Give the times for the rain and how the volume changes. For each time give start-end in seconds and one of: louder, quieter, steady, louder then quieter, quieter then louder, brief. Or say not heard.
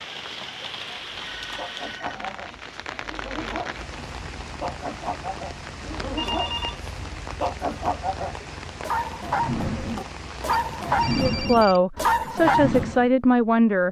0.0-11.2 steady.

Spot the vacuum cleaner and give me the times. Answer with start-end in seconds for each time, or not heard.
not heard.